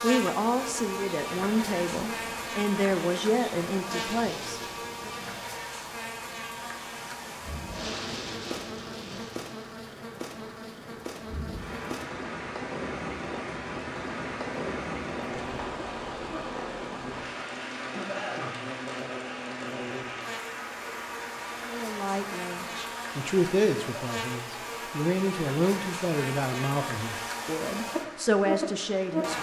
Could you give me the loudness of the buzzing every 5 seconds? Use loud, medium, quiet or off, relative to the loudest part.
loud, medium, medium, medium, medium, loud.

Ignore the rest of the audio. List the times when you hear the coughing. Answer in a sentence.
The coughing can be heard from 17.8 to 18.6 s.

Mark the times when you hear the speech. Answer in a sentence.
You can hear the speech from 0.0 to 5.1 s and from 21.6 to 29.3 s.